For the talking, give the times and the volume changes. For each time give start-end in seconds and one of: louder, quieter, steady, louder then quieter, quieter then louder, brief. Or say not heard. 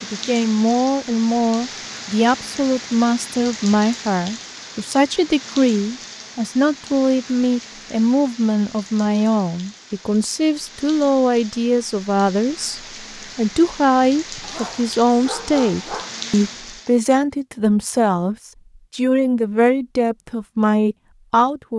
0.0-21.7 steady.